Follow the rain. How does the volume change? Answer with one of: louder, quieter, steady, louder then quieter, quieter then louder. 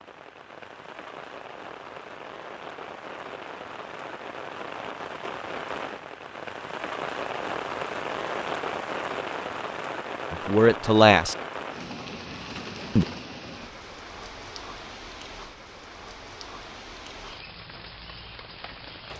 louder then quieter.